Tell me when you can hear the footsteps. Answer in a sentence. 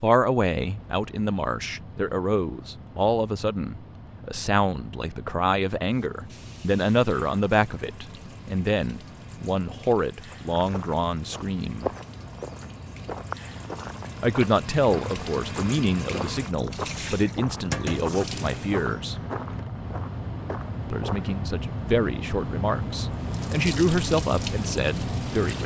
You can hear the footsteps from 10.3 to 21.4 s.